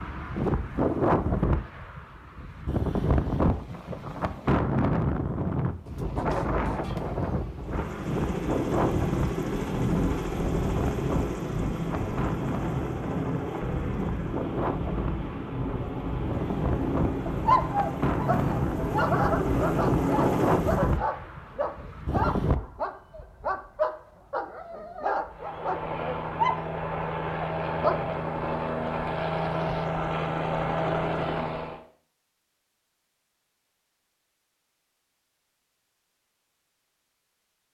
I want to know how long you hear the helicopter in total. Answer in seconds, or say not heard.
20 s.